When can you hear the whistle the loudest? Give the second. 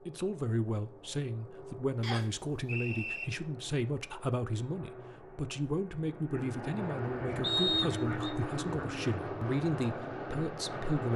8 s.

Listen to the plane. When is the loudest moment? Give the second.
8 s.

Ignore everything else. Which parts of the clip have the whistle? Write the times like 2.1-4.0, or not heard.
2.0-3.2, 7.4-8.3.